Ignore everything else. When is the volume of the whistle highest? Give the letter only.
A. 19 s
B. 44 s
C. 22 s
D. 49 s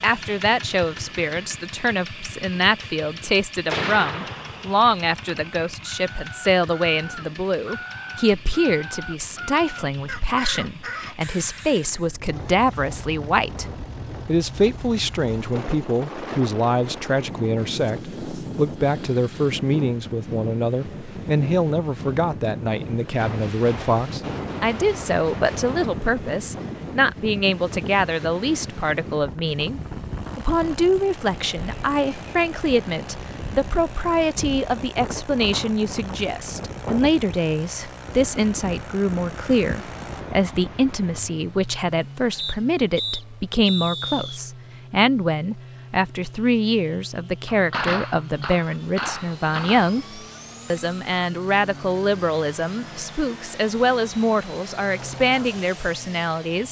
B.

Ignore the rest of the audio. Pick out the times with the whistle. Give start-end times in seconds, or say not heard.
42.4-44.4.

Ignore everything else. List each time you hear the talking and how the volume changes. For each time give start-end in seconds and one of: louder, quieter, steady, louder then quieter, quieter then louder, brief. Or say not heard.
0.0-56.6 steady.